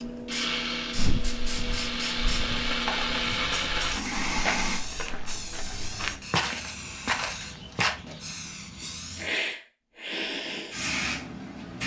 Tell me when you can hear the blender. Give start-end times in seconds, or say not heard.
0.0-4.8.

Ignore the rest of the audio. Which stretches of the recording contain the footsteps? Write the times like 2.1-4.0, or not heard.
0.9-8.0.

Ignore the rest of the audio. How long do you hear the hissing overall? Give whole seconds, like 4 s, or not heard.
12 s.